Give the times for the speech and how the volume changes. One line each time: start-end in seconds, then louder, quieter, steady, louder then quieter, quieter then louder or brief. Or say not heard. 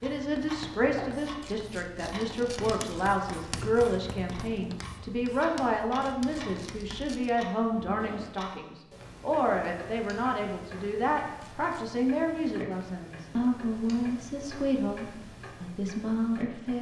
0.0-16.7 steady.